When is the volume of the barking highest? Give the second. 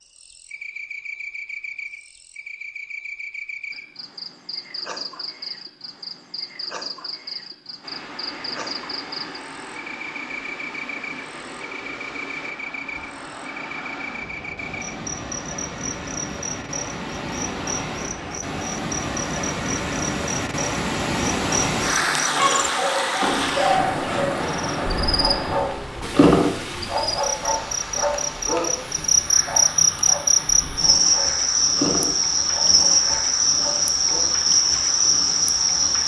26 s.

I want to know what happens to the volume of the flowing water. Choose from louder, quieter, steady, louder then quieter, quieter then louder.
louder then quieter.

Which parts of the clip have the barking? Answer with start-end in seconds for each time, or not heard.
22.3-34.2.